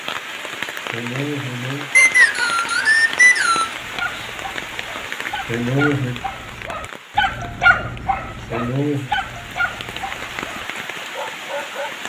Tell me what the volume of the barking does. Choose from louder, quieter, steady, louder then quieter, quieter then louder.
louder then quieter.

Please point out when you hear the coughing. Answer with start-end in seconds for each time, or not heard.
0.9-1.9, 5.5-6.2, 8.5-9.1.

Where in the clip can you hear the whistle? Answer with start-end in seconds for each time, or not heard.
1.9-3.8.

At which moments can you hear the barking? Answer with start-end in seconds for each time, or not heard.
3.8-11.9.